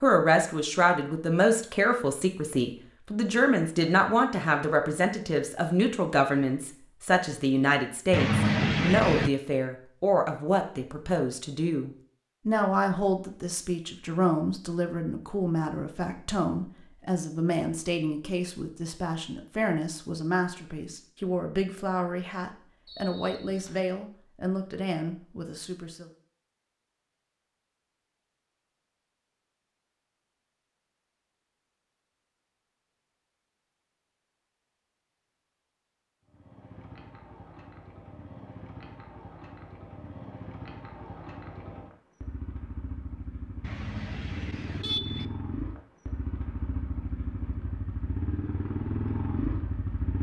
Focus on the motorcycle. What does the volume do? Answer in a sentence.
The volume of the motorcycle goes up.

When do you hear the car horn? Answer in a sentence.
The car horn can be heard from 8.1 to 9.3 s and from 43.6 to 45.2 s.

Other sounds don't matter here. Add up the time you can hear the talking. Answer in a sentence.
The talking can be heard for 26 seconds in total.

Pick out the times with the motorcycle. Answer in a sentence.
The motorcycle can be heard from 36.2 to 50.1 s.